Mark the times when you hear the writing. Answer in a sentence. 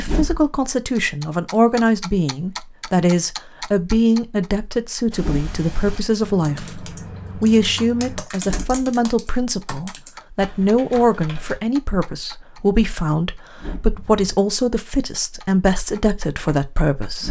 You can't hear the writing here.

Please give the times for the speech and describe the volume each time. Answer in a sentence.
You can hear the speech from 0.0 to 17.2 s, at a steady volume.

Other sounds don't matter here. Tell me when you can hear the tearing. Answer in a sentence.
You can't hear the tearing here.